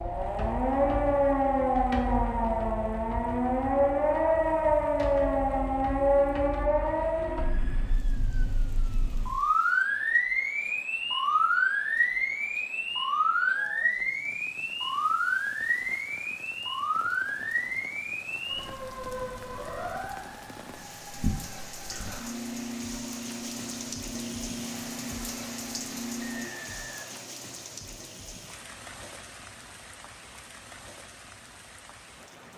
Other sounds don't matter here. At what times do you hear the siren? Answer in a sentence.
You can hear the siren from 0.0 to 26.5 s.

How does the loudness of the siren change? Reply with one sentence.
The loudness of the siren goes down.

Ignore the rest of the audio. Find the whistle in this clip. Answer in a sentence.
The whistle can be heard from 26.2 to 27.2 s.